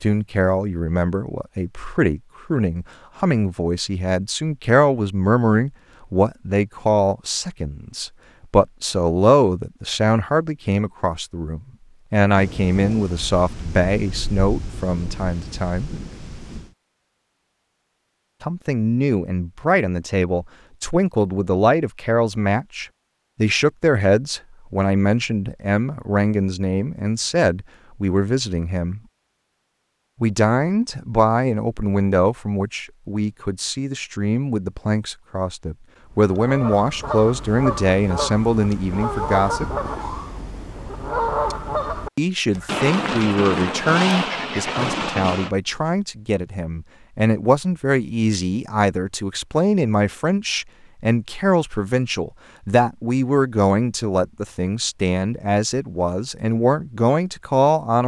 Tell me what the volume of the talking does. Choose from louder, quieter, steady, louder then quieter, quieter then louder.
steady.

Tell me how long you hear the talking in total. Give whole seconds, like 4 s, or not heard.
52 s.